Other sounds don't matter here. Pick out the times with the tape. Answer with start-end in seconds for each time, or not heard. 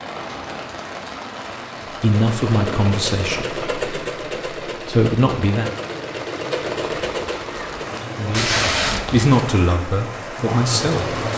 8.3-9.3.